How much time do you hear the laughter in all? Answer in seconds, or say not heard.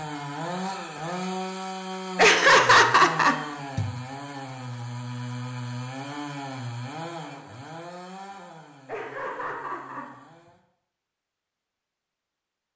3 s.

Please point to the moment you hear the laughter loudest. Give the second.
3 s.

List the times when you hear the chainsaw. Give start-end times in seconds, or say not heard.
0.0-10.7.